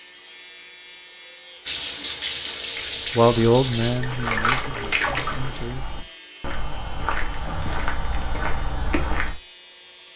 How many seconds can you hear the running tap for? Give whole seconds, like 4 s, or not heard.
4 s.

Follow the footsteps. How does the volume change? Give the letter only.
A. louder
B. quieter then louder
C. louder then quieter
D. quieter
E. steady
A.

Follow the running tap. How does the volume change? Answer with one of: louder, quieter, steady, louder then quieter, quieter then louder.
steady.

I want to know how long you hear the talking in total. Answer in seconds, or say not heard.
3 s.